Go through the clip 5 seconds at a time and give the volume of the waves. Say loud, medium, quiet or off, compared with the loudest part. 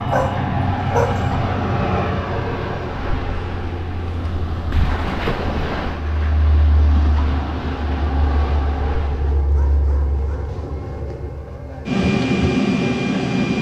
loud, loud, off.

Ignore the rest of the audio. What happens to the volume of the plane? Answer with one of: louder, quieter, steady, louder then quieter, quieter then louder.
quieter then louder.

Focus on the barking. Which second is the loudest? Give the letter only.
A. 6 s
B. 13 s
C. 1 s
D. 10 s
C.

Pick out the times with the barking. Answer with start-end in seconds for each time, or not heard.
0.1-1.3, 9.3-10.6.